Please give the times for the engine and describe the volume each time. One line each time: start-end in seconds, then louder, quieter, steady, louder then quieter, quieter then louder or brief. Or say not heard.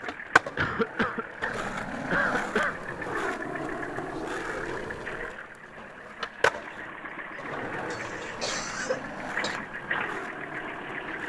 0.0-11.2 louder.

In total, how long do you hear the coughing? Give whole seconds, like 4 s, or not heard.
4 s.